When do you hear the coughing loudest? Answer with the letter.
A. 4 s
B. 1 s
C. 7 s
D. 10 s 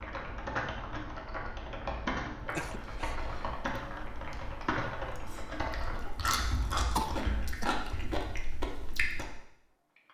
C.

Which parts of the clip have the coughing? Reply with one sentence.
The coughing can be heard from 2.5 to 3.1 s and from 7.0 to 7.7 s.